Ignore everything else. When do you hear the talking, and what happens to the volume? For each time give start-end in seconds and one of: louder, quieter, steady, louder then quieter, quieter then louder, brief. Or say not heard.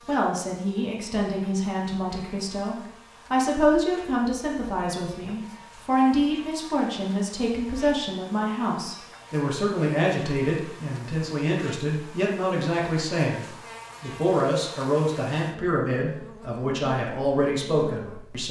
0.1-18.4 steady.